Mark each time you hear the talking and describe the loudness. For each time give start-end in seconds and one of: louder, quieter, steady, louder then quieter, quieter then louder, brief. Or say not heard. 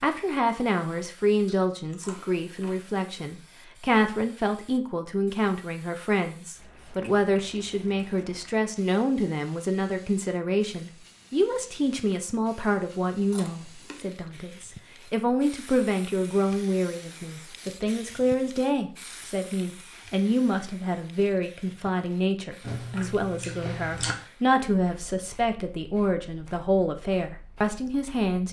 0.0-28.4 steady.